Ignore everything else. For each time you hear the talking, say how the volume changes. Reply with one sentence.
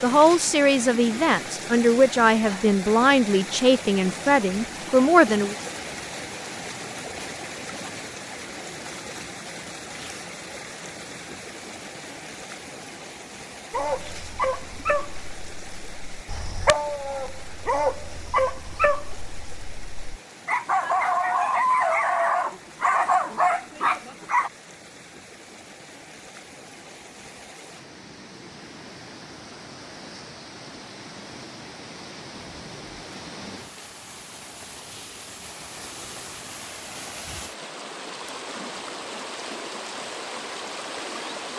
The talking can be heard from 0.0 to 5.5 s, at a steady volume.